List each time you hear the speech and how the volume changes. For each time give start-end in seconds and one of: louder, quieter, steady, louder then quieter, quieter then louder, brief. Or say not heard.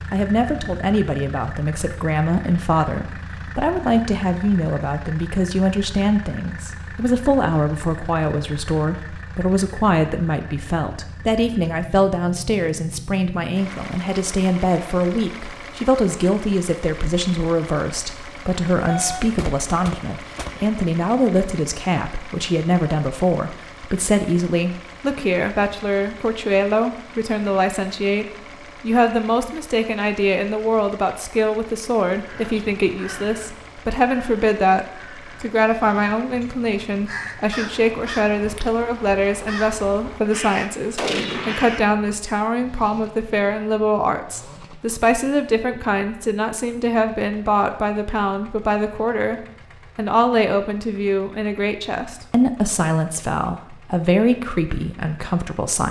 0.1-55.8 steady.